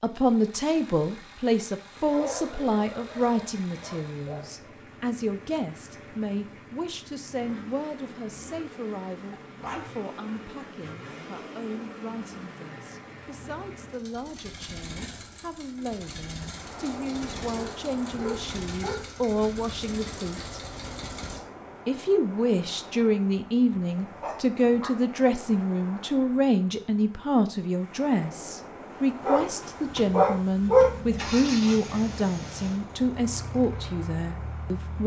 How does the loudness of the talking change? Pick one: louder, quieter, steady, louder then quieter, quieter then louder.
quieter then louder.